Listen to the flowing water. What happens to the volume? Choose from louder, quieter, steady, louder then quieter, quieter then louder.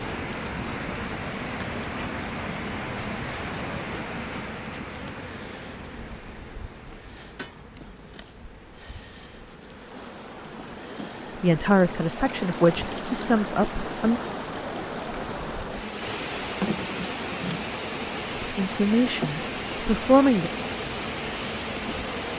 quieter then louder.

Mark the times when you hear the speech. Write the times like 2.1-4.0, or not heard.
11.4-14.2, 18.4-20.5.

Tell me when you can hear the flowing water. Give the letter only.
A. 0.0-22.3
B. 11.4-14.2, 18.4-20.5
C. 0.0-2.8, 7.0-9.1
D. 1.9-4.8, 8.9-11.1
A.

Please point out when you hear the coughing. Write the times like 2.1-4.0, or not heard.
not heard.